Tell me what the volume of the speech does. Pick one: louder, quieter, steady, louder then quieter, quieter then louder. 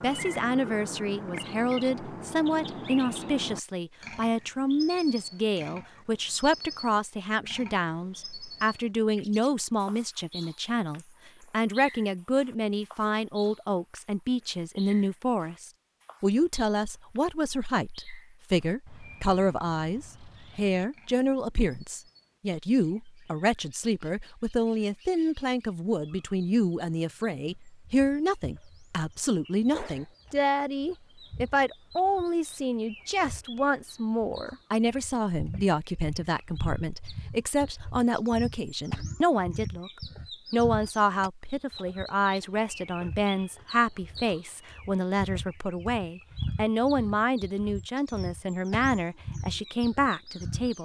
steady.